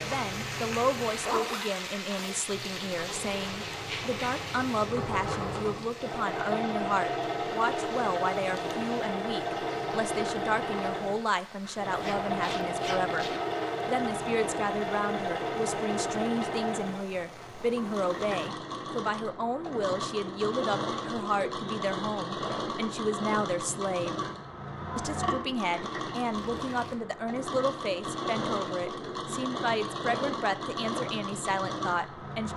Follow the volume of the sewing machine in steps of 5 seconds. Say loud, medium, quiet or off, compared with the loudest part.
medium, loud, loud, loud, loud, loud, loud.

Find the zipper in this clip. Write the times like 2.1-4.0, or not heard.
1.1-2.5, 11.9-13.4, 26.3-26.9.